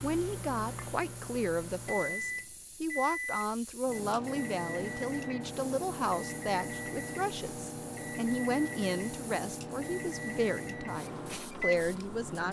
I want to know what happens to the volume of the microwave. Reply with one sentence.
The loudness of the microwave stays about the same.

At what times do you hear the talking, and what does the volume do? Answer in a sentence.
You can hear the talking from 0.0 to 12.4 s, at a steady volume.